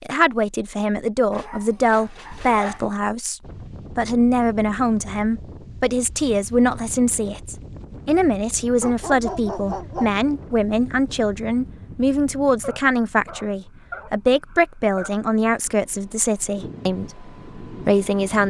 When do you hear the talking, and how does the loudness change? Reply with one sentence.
You can hear the talking from 0.0 to 18.4 s, at a steady volume.